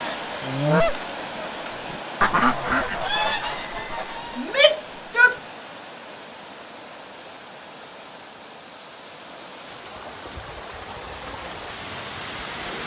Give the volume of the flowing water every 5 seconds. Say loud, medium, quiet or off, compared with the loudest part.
loud, medium, loud.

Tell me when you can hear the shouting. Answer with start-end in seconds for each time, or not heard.
4.3-5.3.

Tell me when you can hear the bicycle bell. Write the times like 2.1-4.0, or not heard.
3.5-4.1.